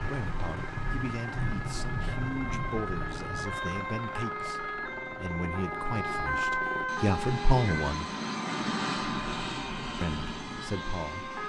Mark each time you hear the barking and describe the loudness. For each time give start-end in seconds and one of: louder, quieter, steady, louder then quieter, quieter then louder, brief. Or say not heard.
not heard.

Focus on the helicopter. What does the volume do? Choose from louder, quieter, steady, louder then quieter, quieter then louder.
louder.